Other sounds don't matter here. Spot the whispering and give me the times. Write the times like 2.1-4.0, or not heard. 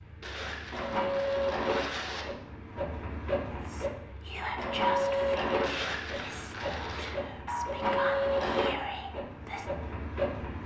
3.5-9.7.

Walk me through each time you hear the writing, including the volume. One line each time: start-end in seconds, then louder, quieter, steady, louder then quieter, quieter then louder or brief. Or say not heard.
not heard.